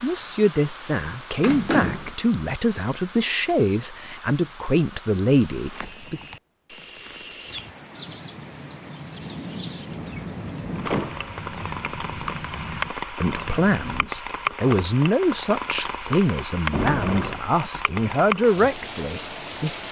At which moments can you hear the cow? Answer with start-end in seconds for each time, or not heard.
not heard.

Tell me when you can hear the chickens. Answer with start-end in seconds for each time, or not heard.
7.5-13.8.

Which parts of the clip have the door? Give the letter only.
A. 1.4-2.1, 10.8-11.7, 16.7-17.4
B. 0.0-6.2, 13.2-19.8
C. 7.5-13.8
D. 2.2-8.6
A.